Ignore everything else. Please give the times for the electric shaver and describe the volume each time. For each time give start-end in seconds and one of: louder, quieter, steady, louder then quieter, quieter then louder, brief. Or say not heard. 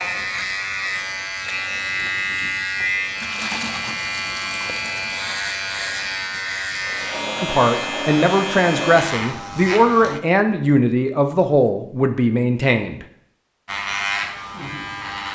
0.0-10.2 steady
13.7-15.3 brief.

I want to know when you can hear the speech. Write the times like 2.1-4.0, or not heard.
7.4-13.1.